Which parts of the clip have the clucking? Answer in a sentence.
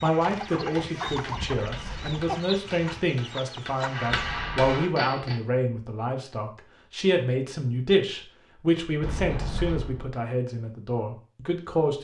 You can hear the clucking from 0.0 to 4.2 s.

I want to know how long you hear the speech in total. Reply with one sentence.
The speech can be heard for 12 seconds in total.